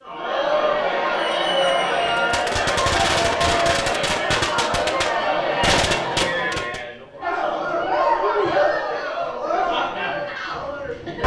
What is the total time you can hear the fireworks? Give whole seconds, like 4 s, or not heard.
6 s.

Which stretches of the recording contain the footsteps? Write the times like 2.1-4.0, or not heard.
not heard.